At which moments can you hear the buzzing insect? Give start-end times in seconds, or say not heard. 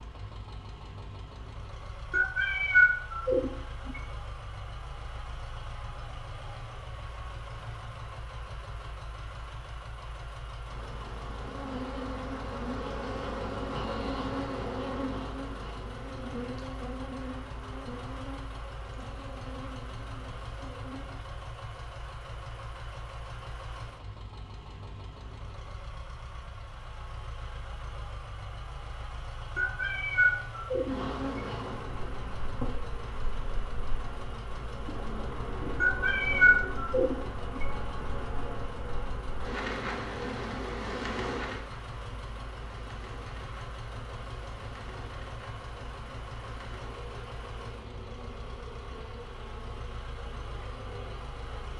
10.7-21.2, 30.9-51.7.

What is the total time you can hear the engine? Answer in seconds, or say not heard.
52 s.